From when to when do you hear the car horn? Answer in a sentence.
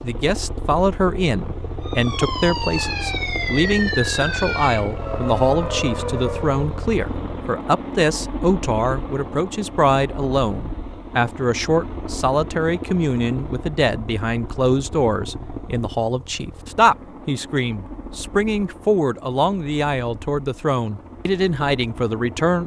You can't hear the car horn here.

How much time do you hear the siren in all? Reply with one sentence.
The siren can be heard for 5 seconds in total.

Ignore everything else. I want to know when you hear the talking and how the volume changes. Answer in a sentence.
You can hear the talking from 0.0 to 22.6 s, at a steady volume.